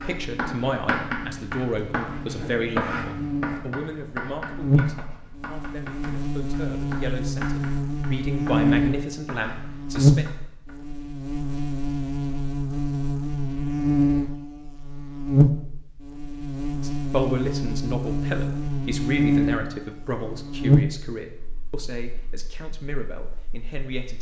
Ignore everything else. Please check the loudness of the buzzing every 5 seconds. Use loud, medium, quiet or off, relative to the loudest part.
medium, loud, loud, loud, loud.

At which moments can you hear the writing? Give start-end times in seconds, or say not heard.
0.0-10.8.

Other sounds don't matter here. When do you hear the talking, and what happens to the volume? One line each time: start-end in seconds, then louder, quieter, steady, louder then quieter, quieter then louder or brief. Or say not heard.
0.0-10.3 quieter then louder
16.8-24.1 quieter.